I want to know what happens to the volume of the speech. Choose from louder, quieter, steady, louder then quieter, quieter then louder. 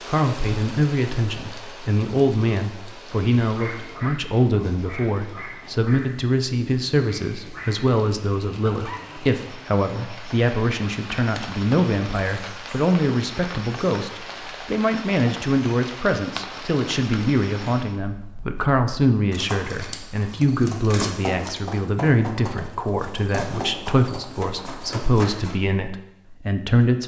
steady.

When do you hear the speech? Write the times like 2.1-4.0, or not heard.
0.1-27.0.